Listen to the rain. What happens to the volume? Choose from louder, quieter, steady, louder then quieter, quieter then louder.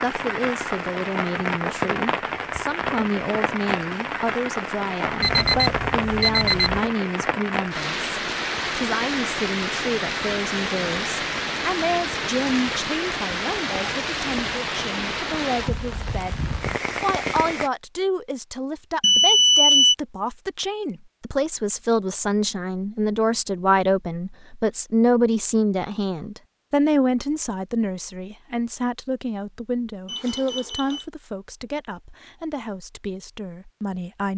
steady.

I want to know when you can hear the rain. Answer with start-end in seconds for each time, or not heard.
0.0-17.7.